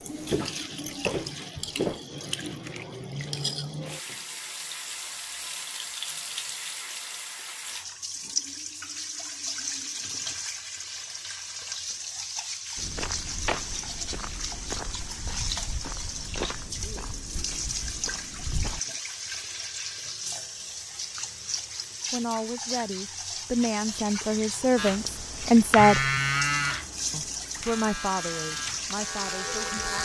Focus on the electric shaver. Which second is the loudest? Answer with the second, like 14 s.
26 s.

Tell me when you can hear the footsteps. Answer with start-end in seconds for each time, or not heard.
0.1-2.0, 12.8-18.8.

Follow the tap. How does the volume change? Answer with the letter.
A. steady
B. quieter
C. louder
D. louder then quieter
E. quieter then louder
A.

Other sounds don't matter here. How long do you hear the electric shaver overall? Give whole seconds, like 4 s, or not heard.
5 s.